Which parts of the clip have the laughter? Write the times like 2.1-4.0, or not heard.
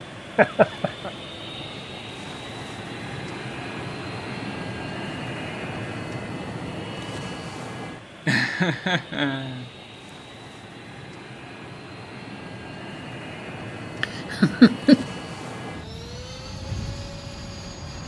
0.3-1.1, 8.2-9.7, 14.0-15.1.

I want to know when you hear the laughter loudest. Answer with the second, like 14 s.
15 s.